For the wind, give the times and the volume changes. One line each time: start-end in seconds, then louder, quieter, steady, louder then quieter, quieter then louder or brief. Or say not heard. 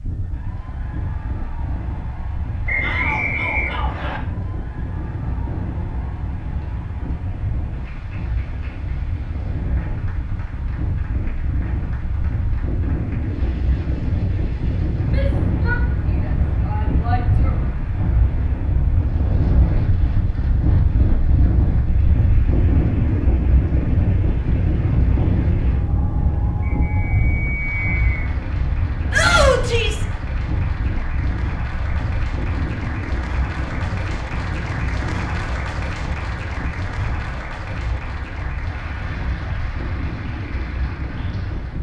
0.0-41.7 louder then quieter.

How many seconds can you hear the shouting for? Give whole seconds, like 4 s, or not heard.
5 s.